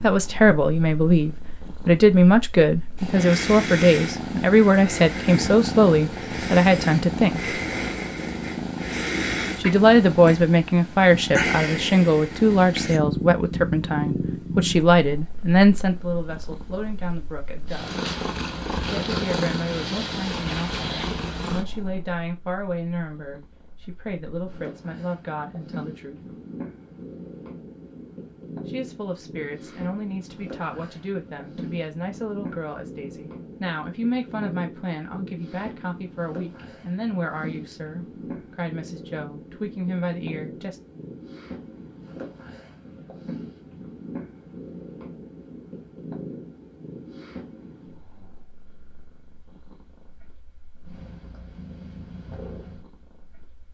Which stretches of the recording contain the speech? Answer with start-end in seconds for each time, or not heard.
0.0-7.5, 9.6-17.9, 18.9-26.2, 28.6-40.8.